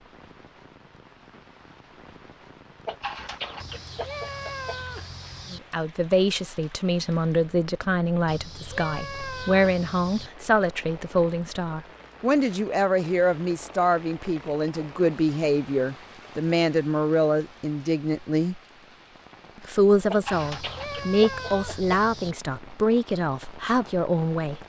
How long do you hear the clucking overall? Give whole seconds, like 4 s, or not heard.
4 s.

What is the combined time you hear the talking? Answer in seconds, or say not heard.
18 s.